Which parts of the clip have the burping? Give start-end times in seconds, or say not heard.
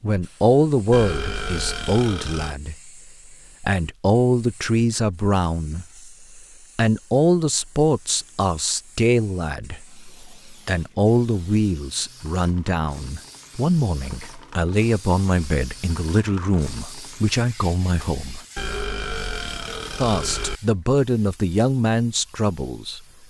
0.9-2.5, 18.6-20.6.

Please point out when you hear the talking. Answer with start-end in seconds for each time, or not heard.
0.0-2.9, 3.6-18.4, 20.0-23.0.